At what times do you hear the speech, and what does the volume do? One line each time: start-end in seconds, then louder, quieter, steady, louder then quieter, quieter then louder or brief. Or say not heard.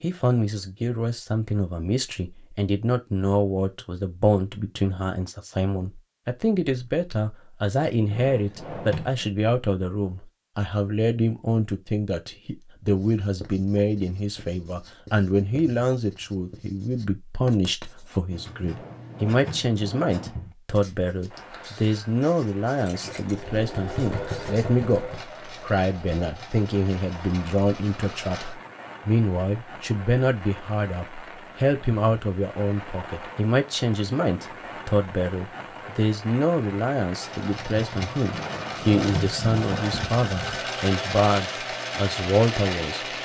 0.0-43.0 steady.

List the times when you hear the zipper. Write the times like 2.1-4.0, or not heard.
not heard.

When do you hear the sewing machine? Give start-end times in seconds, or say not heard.
22.8-28.6, 37.1-43.2.